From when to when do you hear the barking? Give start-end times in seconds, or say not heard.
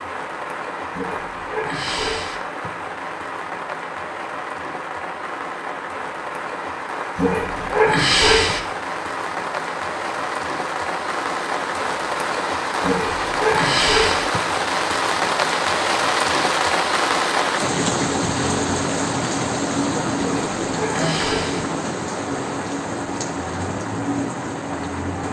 0.9-2.4, 7.2-8.6, 12.8-14.2, 20.1-21.6.